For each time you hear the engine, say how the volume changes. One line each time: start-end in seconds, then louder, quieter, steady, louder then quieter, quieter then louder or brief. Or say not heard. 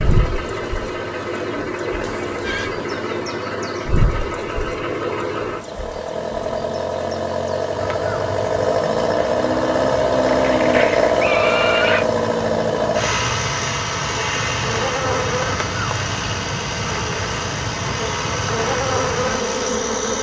0.0-20.1 louder then quieter.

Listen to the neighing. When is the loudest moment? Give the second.
12 s.